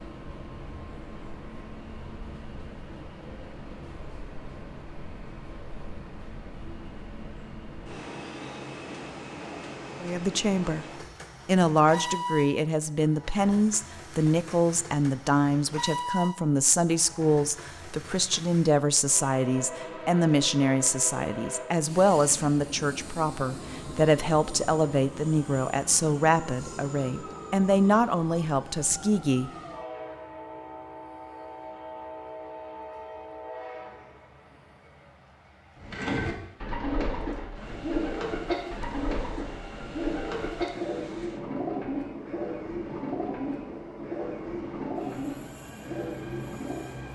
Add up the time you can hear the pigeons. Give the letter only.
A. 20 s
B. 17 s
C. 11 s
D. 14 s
C.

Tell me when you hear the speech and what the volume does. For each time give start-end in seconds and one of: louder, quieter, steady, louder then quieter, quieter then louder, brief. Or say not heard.
10.0-10.8 brief
11.4-29.5 steady.